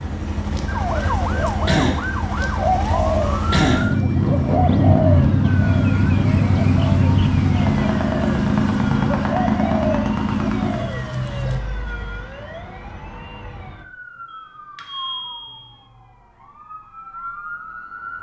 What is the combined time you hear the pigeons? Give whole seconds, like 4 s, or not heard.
11 s.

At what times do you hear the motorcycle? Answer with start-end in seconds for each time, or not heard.
0.0-10.9.